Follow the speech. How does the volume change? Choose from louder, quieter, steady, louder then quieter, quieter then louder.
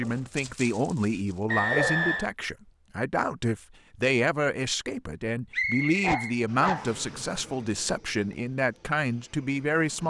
steady.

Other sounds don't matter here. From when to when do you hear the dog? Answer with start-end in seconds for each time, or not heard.
0.0-2.0, 6.0-7.7.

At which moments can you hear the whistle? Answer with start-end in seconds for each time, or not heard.
1.4-2.3, 5.5-7.1.